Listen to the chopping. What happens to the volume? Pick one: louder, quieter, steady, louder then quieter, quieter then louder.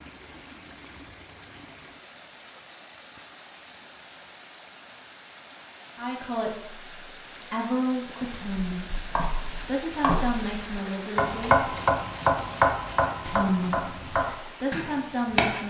louder then quieter.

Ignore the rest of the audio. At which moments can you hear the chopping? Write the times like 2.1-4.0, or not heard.
8.2-15.6.